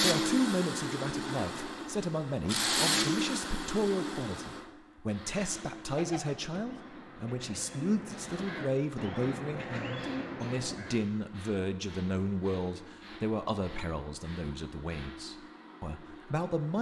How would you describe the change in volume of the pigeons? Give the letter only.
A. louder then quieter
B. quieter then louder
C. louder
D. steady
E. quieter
C.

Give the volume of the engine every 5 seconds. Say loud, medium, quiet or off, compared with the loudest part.
loud, quiet, quiet, quiet.